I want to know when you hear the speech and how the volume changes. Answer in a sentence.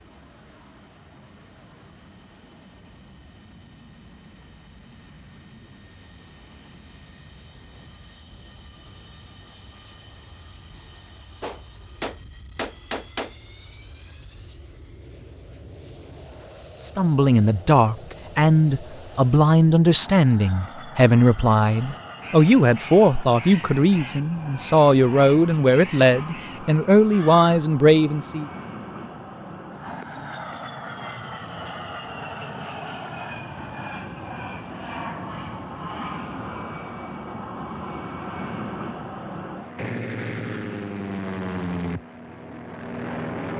You can hear the speech from 16.8 to 28.5 s, at a steady volume.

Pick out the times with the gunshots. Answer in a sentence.
You can hear the gunshots from 11.4 to 13.3 s.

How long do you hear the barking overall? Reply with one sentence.
You can't hear the barking here.